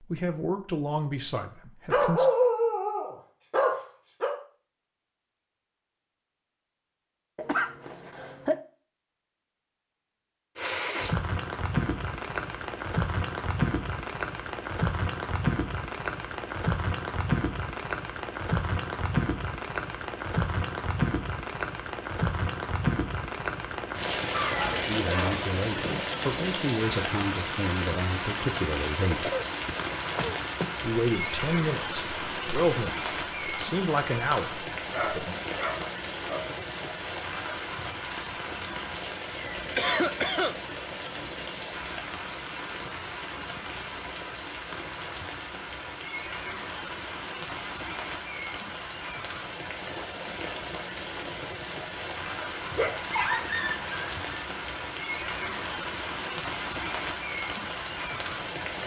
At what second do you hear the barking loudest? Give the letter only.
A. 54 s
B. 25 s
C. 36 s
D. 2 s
D.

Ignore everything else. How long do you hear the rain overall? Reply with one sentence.
The rain can be heard for 48 seconds in total.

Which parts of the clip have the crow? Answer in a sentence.
The crow can't be heard in this clip.